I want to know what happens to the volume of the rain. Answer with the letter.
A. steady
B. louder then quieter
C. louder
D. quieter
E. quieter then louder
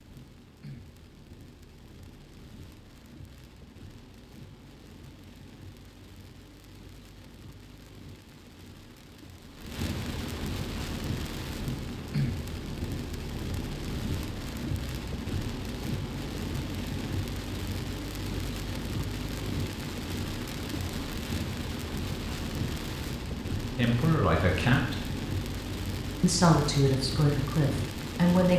C.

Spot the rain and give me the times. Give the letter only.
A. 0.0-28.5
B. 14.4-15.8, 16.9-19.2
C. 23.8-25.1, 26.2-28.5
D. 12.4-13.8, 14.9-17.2
A.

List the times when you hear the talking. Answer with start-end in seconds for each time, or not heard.
23.8-25.1, 26.2-28.5.